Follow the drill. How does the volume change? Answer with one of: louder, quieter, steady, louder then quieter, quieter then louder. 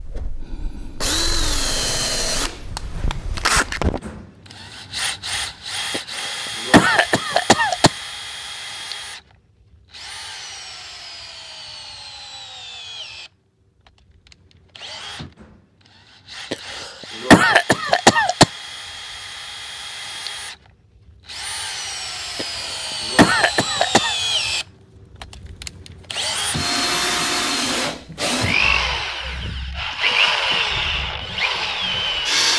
quieter then louder.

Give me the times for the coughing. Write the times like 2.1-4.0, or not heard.
5.9-7.9, 16.5-18.4, 22.4-24.1.